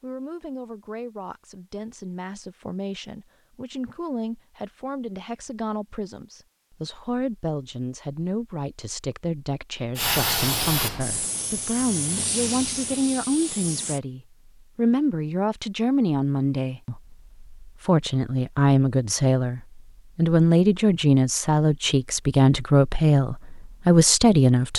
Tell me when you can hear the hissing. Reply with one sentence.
The hissing can be heard from 9.9 to 14.0 s.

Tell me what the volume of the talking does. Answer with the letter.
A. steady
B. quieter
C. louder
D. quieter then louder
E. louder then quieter
C.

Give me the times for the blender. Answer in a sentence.
The blender can't be heard in this clip.